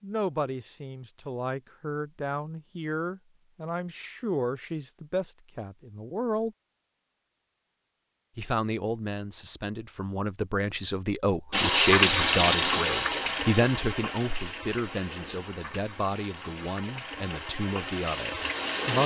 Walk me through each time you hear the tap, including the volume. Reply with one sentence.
The tap can be heard from 11.5 to 19.0 s, getting quieter then louder.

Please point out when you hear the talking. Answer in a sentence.
The talking can be heard from 0.0 to 6.5 s and from 8.3 to 19.0 s.